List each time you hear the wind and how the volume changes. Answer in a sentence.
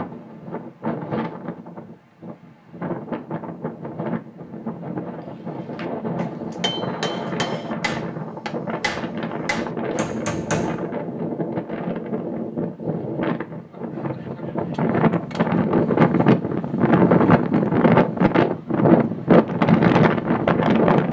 You can hear the wind from 0.0 to 21.0 s, getting louder.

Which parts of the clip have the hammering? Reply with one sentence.
You can hear the hammering from 5.8 to 10.8 s.